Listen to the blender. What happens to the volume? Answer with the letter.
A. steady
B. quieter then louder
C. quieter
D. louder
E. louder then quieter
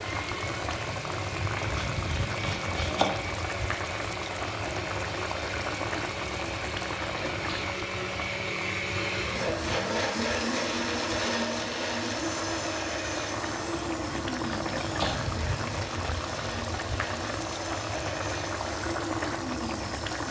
E.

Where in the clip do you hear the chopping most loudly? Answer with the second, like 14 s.
3 s.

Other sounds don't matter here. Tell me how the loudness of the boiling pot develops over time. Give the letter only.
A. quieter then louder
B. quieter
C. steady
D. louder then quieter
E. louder
A.